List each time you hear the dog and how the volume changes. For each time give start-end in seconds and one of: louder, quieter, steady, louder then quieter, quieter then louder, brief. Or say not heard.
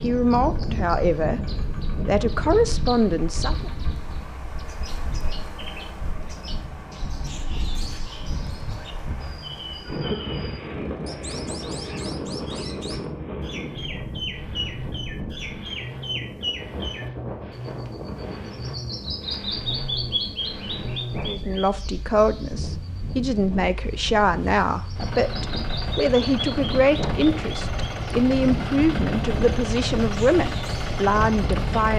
not heard.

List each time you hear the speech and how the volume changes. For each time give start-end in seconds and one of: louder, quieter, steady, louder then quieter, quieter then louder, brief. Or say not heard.
0.0-1.4 brief
2.0-3.7 brief
21.2-31.9 steady.